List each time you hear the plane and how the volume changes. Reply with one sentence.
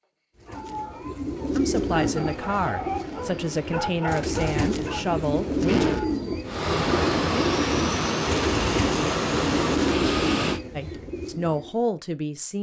You can hear the plane from 1.7 to 10.6 s, getting louder.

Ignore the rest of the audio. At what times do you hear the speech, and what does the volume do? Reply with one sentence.
The speech can be heard from 1.6 to 5.8 s, at a steady volume; and briefly from 10.8 to 12.5 s.